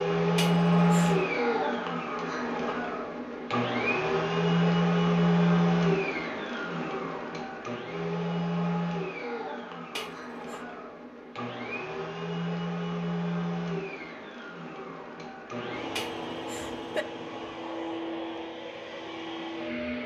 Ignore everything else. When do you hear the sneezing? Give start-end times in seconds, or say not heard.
0.3-1.1, 9.9-10.6, 15.9-17.1.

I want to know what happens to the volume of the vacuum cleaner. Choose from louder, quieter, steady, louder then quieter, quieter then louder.
quieter.